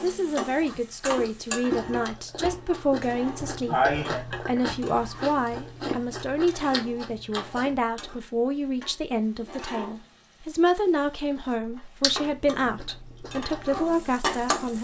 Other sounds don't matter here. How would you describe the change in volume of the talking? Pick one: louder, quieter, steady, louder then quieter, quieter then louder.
steady.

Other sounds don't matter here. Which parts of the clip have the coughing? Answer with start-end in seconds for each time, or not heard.
2.6-4.2.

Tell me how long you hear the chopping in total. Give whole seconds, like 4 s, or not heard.
not heard.